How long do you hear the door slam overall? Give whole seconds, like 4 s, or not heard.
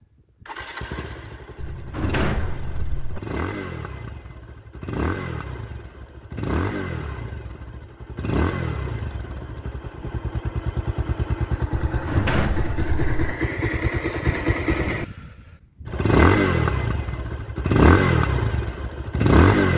3 s.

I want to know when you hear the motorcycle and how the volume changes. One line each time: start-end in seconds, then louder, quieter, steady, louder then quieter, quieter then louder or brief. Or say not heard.
0.0-19.7 louder.